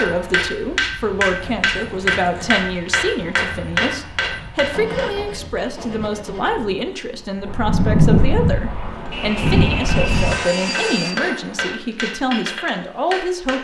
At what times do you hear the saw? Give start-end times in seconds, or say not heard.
1.2-2.6, 4.7-6.5, 9.1-11.2.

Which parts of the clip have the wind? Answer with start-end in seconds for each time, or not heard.
0.0-10.3.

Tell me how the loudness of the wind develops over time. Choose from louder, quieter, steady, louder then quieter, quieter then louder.
louder.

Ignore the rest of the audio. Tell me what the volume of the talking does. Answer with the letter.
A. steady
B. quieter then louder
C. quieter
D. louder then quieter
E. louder
A.